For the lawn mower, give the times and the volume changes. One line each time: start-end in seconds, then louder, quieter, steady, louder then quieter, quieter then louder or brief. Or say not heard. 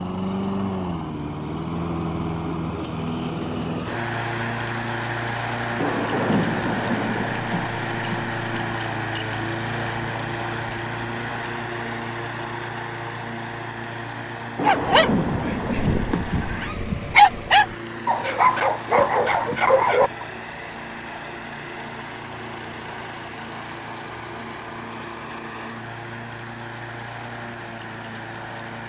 0.0-28.8 quieter.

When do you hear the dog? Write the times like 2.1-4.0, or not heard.
14.7-20.2.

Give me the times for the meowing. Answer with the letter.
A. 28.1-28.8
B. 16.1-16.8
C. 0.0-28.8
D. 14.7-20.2
B.